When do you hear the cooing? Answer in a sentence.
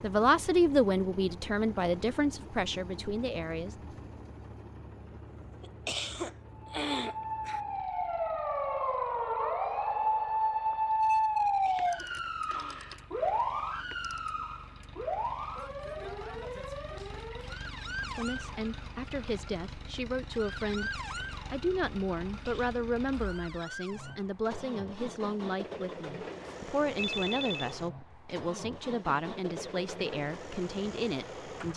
You can't hear the cooing here.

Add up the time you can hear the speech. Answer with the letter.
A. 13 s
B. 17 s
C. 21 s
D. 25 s
B.